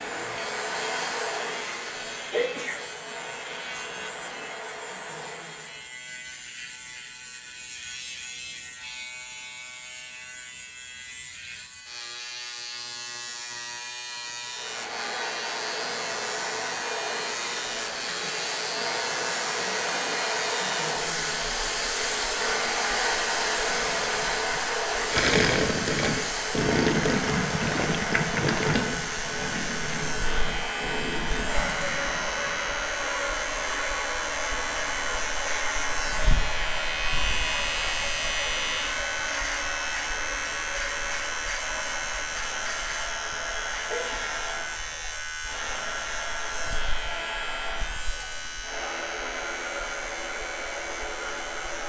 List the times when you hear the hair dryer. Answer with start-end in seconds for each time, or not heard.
0.0-6.0, 14.4-51.8.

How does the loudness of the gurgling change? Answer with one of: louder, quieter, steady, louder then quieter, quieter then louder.
quieter.